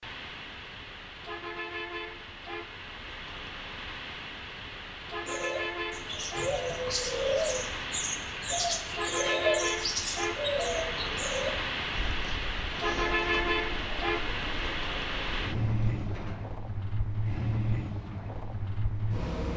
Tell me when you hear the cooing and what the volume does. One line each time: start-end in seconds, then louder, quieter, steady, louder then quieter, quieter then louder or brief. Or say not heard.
5.2-16.4 quieter.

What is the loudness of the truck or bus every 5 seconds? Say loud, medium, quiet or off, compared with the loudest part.
medium, loud, loud, loud.